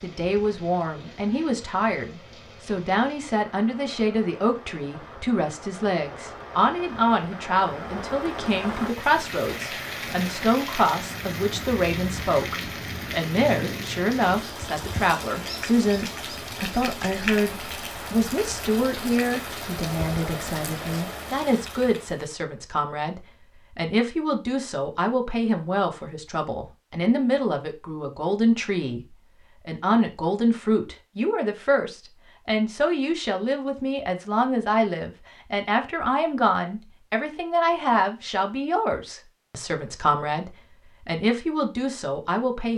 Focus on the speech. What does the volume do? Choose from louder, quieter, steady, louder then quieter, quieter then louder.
steady.